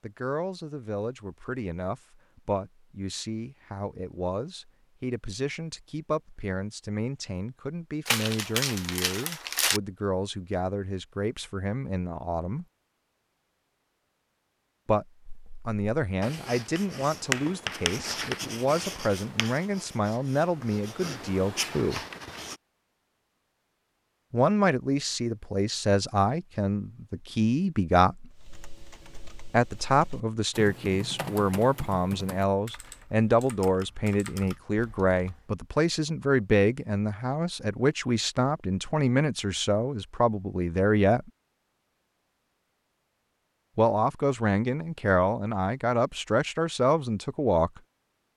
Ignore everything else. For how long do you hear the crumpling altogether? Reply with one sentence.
The crumpling can be heard for 2 seconds in total.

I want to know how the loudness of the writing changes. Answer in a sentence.
The volume of the writing goes down, then up.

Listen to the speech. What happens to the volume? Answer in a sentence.
The volume of the speech goes up.